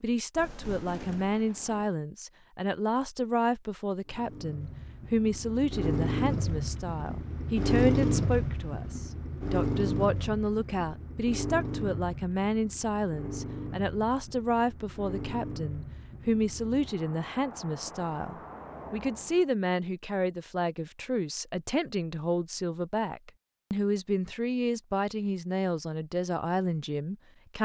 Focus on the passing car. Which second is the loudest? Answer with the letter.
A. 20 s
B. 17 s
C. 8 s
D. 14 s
C.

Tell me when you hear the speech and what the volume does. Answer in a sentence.
The speech can be heard from 0.0 to 27.6 s, at a steady volume.